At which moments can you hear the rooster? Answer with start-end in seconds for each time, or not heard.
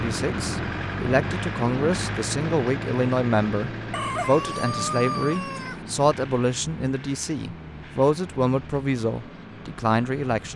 3.9-5.8.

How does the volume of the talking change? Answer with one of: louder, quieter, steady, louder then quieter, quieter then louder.
steady.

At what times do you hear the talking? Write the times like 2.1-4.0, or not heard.
0.0-10.5.